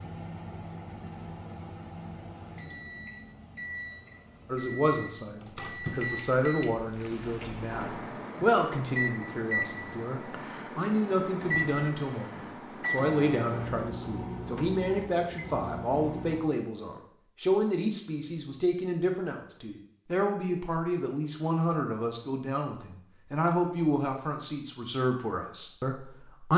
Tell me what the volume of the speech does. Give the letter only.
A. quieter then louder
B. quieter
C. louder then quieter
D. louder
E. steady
E.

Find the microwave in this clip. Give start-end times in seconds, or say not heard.
0.0-16.4.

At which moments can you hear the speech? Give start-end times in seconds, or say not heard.
4.5-26.5.